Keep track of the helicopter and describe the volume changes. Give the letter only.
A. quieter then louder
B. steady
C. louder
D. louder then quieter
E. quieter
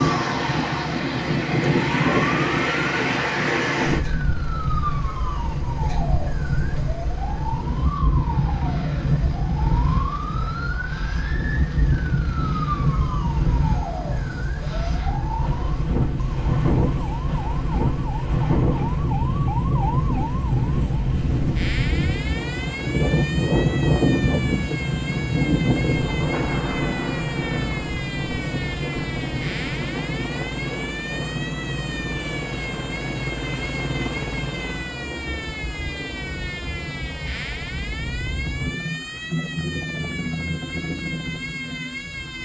C.